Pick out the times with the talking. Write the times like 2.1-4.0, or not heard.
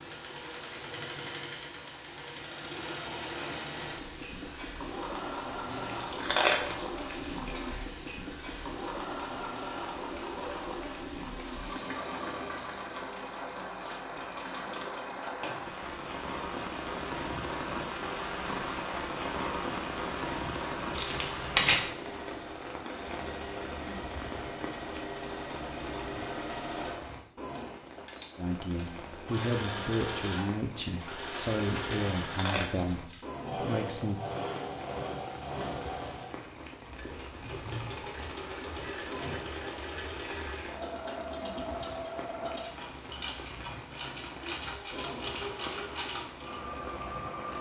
28.4-34.2.